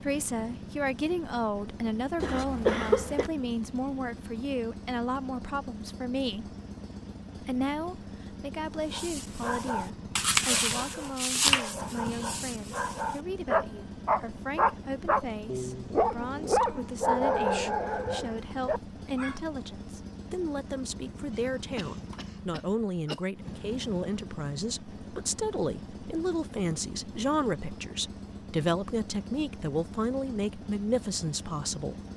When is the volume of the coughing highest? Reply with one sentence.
The loudest moment of the coughing is at 3 seconds.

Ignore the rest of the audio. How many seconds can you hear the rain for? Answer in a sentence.
You can't hear the rain here.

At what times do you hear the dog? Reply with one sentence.
The dog can be heard from 8.9 to 19.4 s.